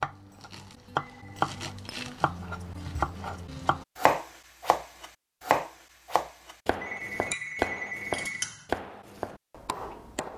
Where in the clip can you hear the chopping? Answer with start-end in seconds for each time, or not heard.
0.0-10.3.